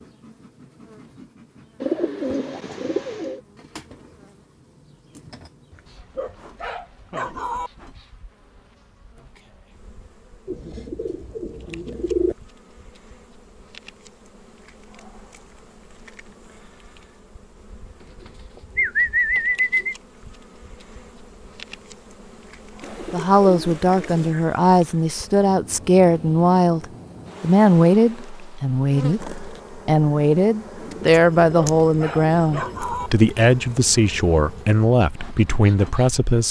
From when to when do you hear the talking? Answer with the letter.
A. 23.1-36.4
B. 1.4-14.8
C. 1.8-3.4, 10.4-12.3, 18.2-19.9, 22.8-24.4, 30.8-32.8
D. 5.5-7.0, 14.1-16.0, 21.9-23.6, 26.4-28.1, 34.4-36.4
A.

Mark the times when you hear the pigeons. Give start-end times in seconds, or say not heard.
1.8-3.4, 10.4-12.3, 18.2-19.9, 22.8-24.4, 30.8-32.8.